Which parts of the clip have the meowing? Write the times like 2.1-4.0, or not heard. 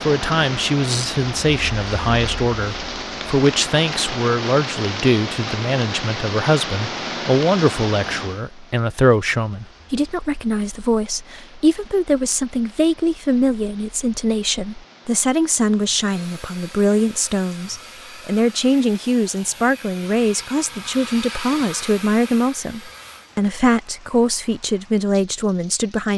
not heard.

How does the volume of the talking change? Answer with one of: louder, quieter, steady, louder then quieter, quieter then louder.
steady.